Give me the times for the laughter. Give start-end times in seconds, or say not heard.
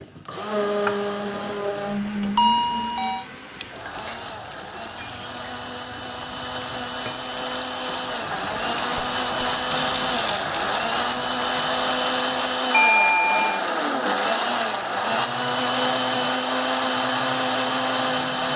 not heard.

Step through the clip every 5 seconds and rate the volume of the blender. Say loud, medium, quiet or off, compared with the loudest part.
medium, medium, loud, loud.